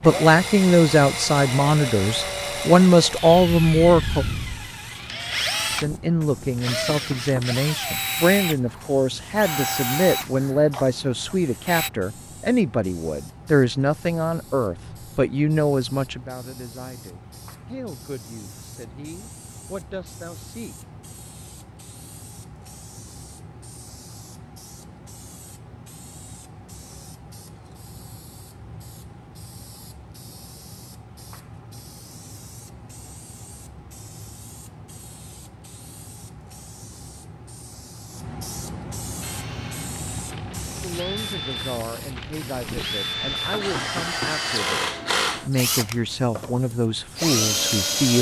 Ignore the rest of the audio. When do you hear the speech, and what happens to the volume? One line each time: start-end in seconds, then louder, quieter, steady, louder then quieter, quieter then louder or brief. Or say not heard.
0.0-4.2 quieter then louder
5.8-20.8 quieter
40.8-48.1 louder.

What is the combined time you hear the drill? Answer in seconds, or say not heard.
21 s.